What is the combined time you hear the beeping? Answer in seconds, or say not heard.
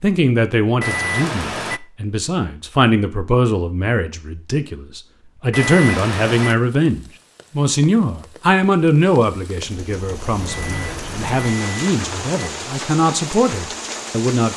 4 s.